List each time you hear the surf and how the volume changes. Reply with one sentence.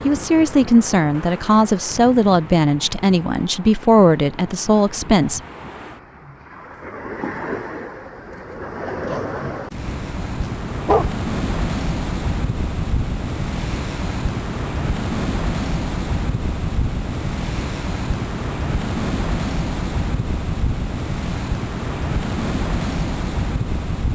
You can hear the surf from 0.0 to 24.1 s, getting louder.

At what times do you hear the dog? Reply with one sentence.
You can hear the dog from 9.7 to 11.2 s.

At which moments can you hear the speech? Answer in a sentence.
You can hear the speech from 0.0 to 5.4 s.